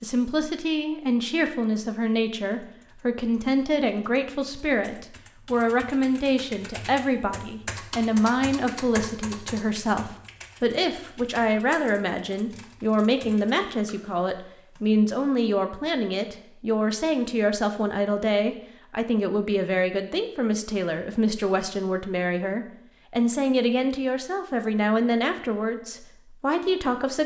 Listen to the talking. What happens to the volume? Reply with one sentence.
The loudness of the talking stays about the same.